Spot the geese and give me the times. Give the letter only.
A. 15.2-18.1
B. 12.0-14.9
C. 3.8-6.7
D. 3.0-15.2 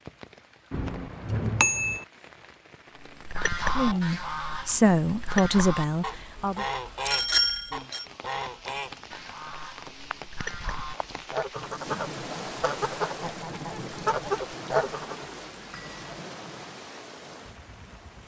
D.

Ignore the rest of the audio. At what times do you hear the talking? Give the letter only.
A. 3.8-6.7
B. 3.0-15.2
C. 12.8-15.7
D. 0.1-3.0
A.